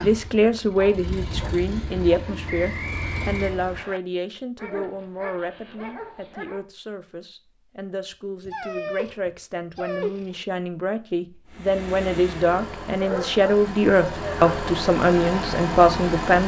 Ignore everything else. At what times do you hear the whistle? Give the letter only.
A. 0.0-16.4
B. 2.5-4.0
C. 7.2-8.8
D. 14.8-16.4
B.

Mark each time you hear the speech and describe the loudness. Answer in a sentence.
The speech can be heard from 0.0 to 16.4 s, getting quieter then louder.